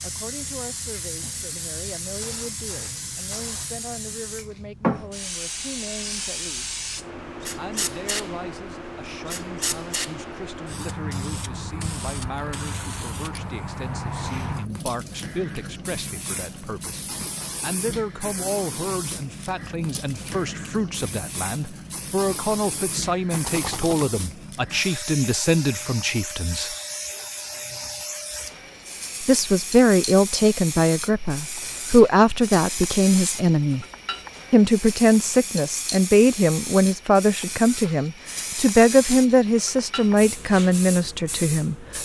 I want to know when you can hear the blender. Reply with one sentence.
The blender can't be heard in this clip.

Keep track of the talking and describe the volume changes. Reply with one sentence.
The volume of the talking goes up.